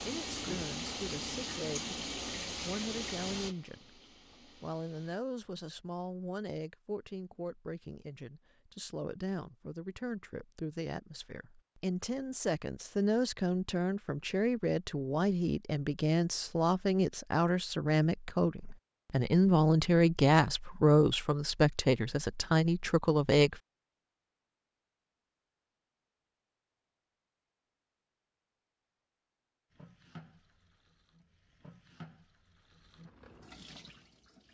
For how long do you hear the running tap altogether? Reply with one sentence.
The running tap can be heard for 10 seconds in total.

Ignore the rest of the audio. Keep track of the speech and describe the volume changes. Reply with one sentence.
The volume of the speech goes up.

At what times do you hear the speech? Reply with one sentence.
The speech can be heard from 0.0 to 23.6 s.